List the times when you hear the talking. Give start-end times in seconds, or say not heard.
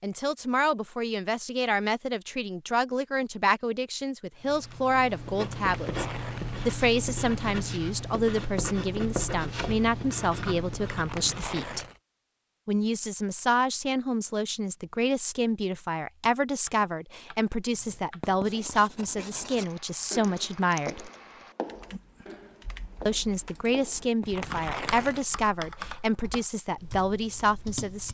0.0-6.0, 6.7-11.8, 12.7-21.1, 23.1-28.0.